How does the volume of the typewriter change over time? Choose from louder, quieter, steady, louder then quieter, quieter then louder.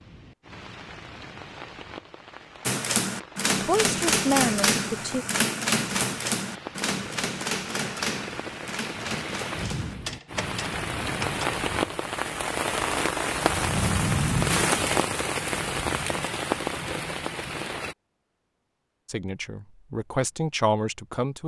quieter.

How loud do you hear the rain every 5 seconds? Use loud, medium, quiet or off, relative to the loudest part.
quiet, medium, loud, loud, off.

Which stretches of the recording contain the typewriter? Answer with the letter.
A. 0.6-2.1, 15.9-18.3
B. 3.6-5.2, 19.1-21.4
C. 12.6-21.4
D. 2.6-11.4
D.